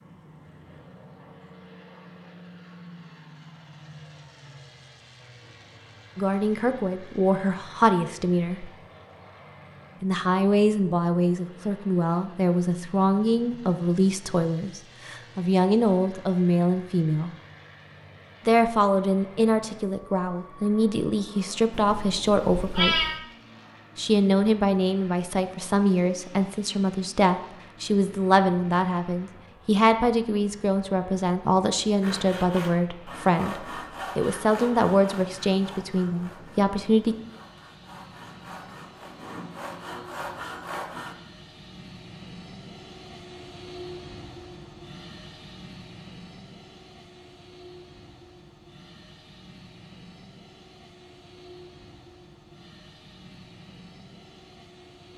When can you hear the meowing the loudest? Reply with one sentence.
The loudest moment of the meowing is at 23 seconds.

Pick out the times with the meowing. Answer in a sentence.
You can hear the meowing from 21.7 to 23.2 s.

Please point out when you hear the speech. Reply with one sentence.
The speech can be heard from 6.2 to 8.7 s, from 10.0 to 17.3 s, from 18.4 to 22.9 s and from 23.9 to 37.1 s.